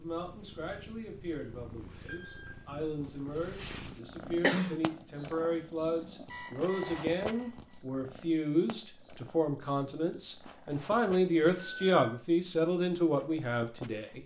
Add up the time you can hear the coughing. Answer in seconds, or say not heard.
2 s.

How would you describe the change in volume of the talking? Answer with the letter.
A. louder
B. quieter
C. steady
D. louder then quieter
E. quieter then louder
A.